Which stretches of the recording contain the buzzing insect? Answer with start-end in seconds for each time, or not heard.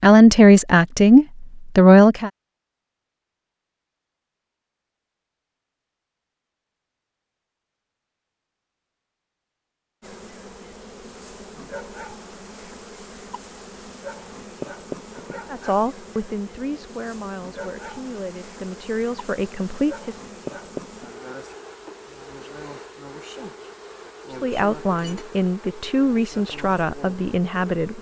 10.0-27.9.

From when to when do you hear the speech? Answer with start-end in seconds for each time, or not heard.
0.0-2.3, 15.5-20.1, 24.3-27.9.